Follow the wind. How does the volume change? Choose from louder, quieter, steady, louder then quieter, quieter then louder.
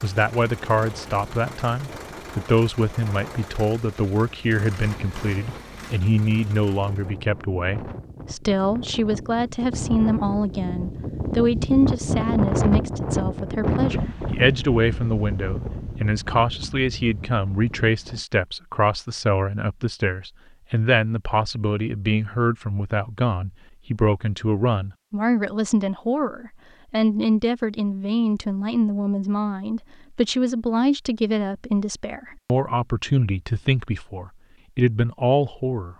louder then quieter.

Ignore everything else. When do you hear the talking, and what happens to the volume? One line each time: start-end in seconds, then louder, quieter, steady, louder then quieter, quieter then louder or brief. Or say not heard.
0.0-35.9 steady.